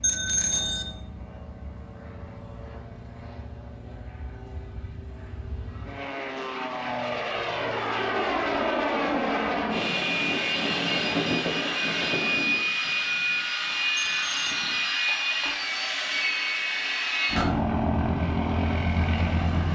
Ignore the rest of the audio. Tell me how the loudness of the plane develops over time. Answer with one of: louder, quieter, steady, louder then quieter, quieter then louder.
louder.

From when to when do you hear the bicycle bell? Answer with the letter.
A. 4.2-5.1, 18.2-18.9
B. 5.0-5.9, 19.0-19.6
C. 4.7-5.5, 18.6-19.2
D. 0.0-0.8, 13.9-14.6
D.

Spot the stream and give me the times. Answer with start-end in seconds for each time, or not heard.
not heard.